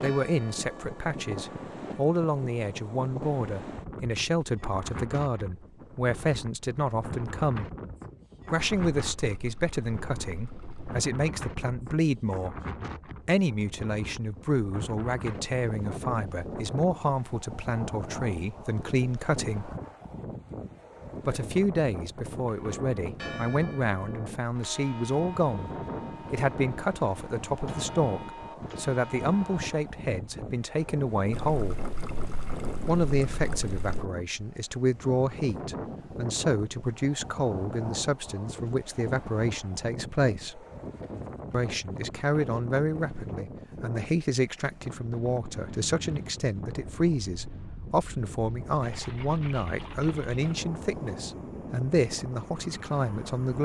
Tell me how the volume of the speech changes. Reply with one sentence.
The loudness of the speech stays about the same.